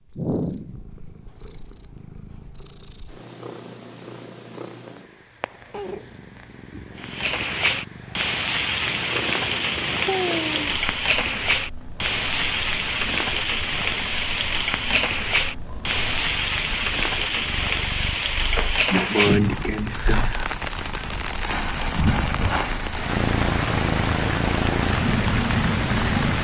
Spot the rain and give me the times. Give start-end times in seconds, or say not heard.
7.0-26.3.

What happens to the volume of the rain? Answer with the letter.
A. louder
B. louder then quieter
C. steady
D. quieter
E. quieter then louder
C.